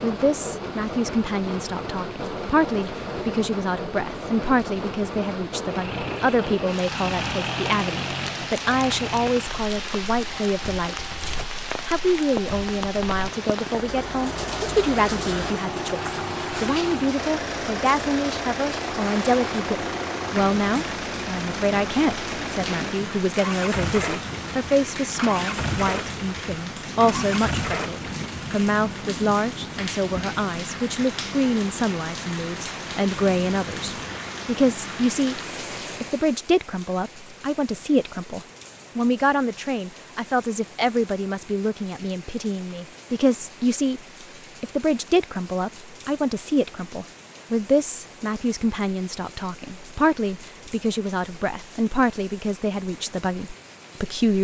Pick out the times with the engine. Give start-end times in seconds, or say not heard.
5.7-28.3.